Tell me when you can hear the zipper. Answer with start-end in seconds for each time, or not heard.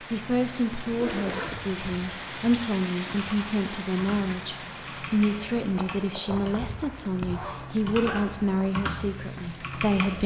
0.8-1.6, 7.2-8.8.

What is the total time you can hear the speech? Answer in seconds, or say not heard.
10 s.